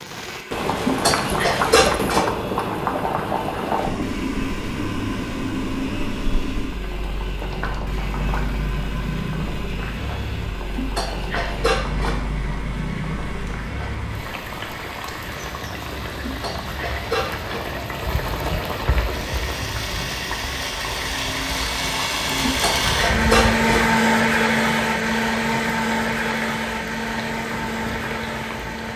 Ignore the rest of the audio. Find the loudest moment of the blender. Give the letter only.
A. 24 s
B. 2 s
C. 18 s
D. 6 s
A.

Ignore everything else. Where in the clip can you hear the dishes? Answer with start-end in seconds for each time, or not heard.
0.7-2.4, 10.6-12.2, 16.2-17.8, 22.2-23.6.